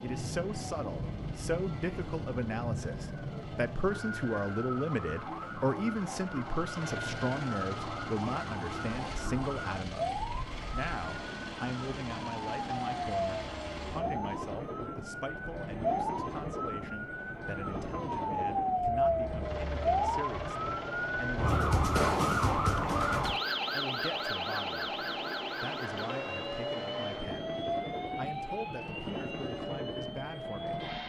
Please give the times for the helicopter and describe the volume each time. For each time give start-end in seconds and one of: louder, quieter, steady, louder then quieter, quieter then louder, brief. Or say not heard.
0.0-31.0 louder.